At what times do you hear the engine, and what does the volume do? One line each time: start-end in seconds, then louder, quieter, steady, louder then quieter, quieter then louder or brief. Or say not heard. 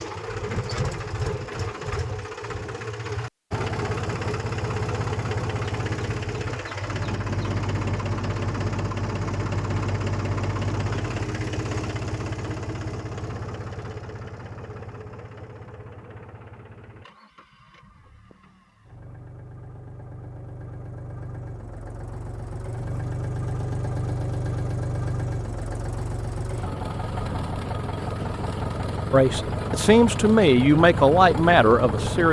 0.0-32.2 quieter then louder.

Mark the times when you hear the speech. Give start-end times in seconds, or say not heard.
29.1-32.2.